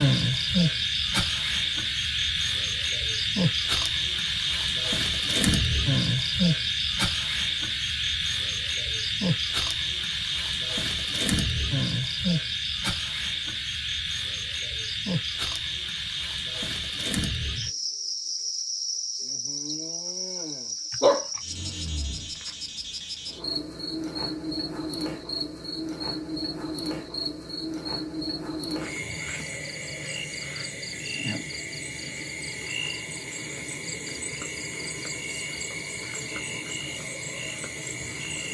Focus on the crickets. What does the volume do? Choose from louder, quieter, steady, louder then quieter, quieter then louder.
quieter.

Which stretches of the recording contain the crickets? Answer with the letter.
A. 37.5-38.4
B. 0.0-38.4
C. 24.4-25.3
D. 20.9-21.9
B.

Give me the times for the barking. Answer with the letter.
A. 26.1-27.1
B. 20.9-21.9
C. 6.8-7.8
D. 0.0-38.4
B.